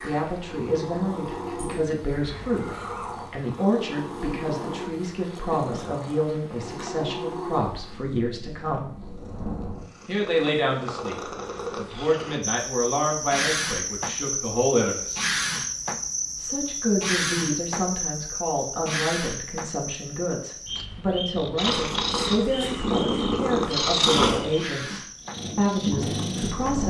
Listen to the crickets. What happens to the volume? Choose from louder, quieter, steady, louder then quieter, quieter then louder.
quieter.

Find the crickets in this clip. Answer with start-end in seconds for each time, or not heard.
12.4-26.8.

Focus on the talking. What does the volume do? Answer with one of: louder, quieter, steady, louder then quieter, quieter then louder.
steady.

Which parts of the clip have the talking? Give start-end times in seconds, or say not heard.
0.0-8.9, 10.1-15.3, 16.4-26.8.